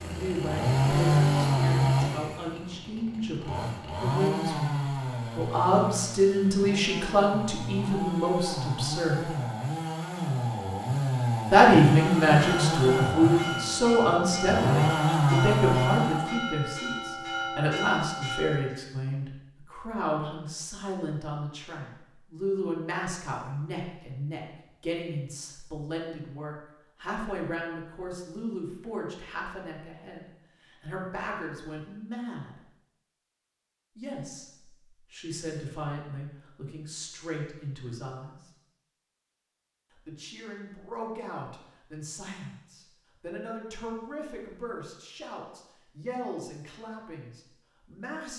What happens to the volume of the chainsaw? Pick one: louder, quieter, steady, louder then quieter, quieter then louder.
quieter then louder.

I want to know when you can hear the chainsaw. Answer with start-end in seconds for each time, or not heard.
0.0-16.4.